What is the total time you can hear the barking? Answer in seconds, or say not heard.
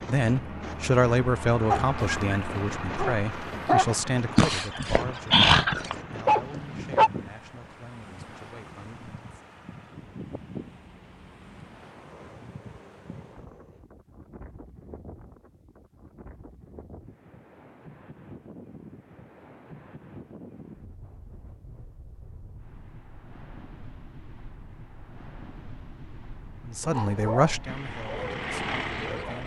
8 s.